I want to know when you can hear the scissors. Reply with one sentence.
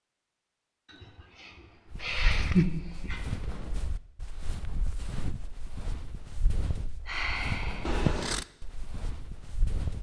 The scissors can be heard from 2.0 to 2.6 s and from 7.8 to 8.4 s.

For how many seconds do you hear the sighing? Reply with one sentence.
The sighing can be heard for 3 seconds in total.